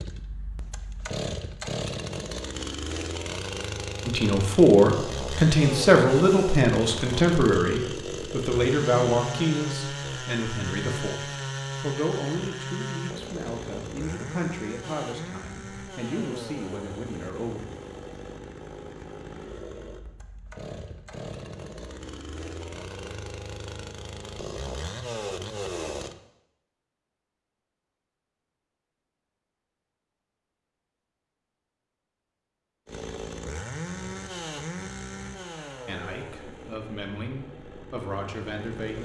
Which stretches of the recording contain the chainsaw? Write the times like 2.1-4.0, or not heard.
0.0-26.1, 32.9-39.0.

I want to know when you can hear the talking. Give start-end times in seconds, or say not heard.
4.0-17.6, 35.9-39.0.